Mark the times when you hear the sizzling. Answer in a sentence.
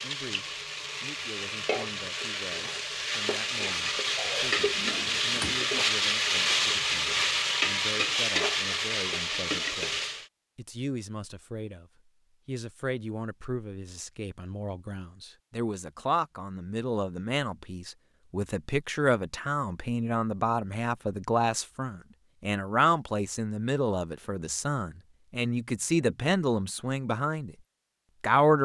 The sizzling can be heard from 0.0 to 10.3 s.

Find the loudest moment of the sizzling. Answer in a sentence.
The volume of the sizzling peaks at 6 seconds.